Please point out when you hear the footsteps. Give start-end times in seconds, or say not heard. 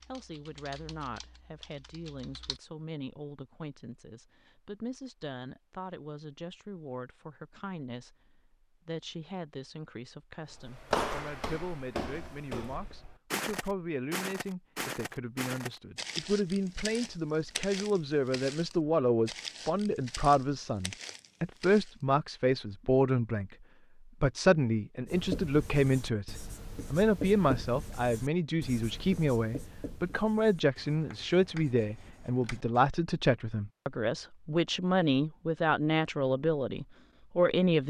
10.5-21.9.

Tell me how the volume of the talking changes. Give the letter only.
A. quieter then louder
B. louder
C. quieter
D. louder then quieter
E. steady
B.